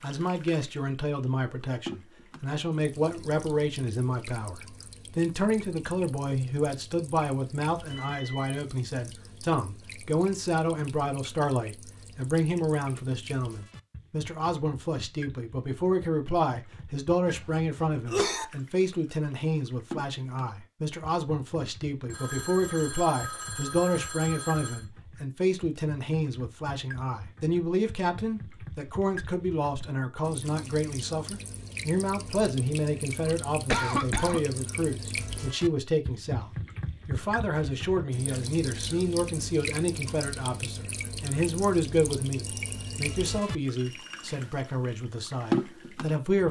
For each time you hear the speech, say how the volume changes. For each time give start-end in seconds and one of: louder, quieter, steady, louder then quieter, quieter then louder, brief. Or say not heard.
0.0-46.4 steady.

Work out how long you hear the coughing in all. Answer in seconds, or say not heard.
2 s.